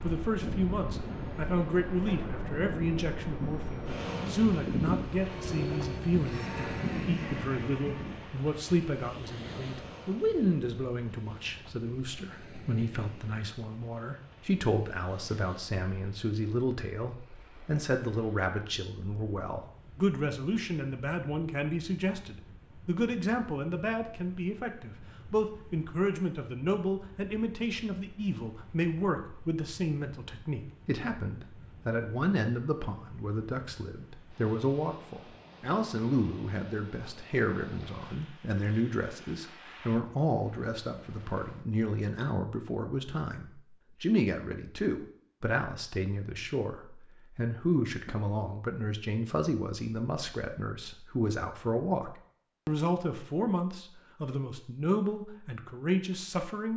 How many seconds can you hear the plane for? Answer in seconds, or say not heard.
8 s.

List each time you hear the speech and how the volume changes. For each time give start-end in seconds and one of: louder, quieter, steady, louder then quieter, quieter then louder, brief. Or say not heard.
0.0-56.7 steady.